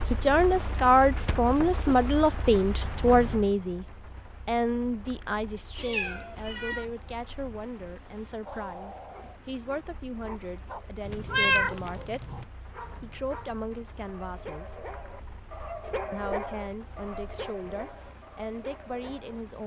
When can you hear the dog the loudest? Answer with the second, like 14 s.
16 s.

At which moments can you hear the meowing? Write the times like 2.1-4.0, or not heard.
5.8-6.8, 11.1-12.4.